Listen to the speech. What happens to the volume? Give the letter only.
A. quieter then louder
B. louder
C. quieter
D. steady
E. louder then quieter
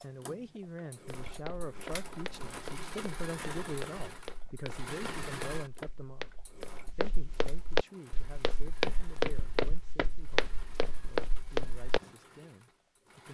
C.